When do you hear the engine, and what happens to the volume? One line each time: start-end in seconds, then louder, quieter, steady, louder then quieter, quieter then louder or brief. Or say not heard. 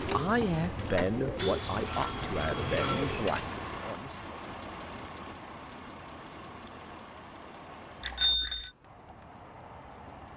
0.0-10.3 quieter.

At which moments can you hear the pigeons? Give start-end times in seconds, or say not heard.
0.0-3.5.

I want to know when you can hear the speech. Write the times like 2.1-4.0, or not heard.
0.0-4.2.